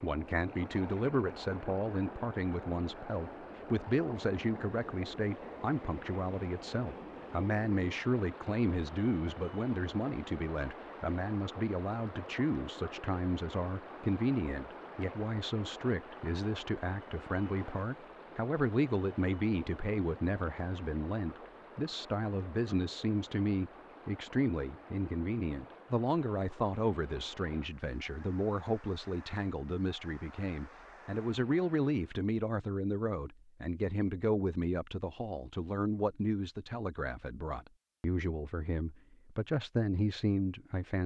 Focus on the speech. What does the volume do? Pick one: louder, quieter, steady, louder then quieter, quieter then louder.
steady.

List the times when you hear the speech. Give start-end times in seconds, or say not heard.
0.0-41.0.